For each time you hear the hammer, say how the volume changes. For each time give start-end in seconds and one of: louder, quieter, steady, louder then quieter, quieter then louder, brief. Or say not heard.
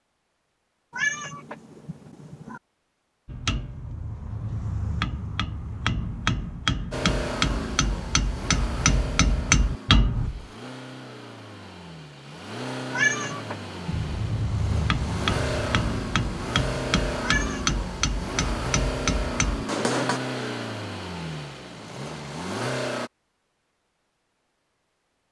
3.2-10.3 louder
13.9-20.2 steady.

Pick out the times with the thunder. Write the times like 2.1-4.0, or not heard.
not heard.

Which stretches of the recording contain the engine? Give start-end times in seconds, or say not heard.
6.9-23.1.